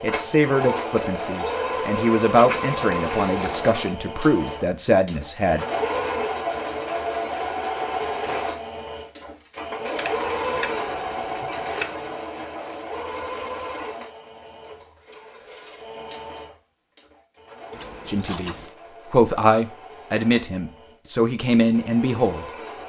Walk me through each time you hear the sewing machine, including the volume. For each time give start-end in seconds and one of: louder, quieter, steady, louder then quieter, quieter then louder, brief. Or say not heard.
0.0-22.8 quieter.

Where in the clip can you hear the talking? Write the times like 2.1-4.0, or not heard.
0.0-5.7, 18.1-22.4.